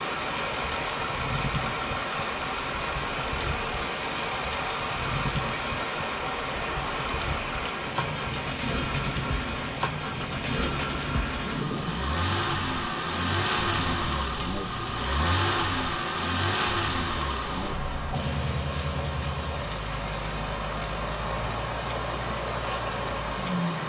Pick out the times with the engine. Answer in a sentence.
The engine can be heard from 0.0 to 23.8 s.